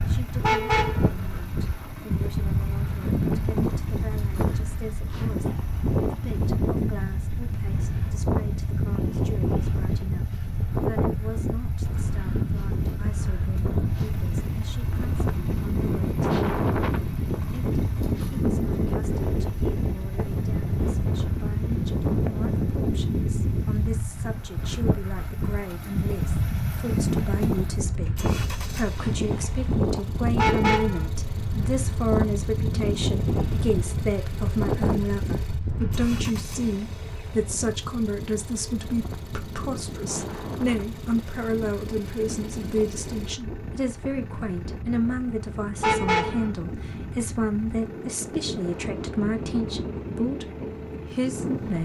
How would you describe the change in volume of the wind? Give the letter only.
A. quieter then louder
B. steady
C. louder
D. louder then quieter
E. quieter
E.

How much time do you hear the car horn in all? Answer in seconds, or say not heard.
2 s.